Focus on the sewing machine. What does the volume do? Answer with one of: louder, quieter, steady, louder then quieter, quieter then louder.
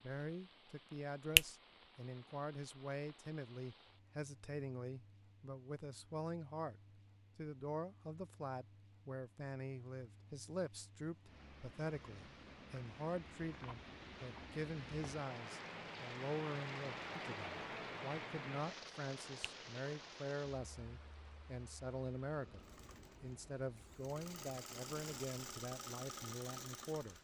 louder.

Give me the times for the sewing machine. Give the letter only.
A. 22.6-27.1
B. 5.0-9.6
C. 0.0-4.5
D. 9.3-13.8
A.